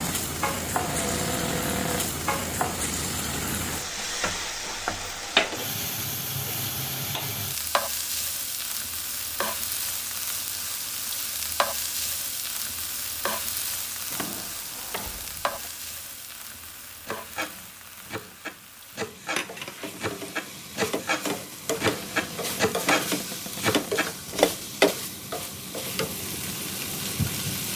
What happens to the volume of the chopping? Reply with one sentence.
The volume of the chopping goes up.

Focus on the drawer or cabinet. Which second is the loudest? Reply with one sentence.
The loudest moment of the drawer or cabinet is at 2 seconds.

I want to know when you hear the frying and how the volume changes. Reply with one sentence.
You can hear the frying from 0.0 to 27.7 s, getting quieter then louder.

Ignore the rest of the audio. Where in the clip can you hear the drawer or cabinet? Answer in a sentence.
You can hear the drawer or cabinet from 0.7 to 2.1 s, from 14.1 to 15.7 s and from 21.6 to 24.1 s.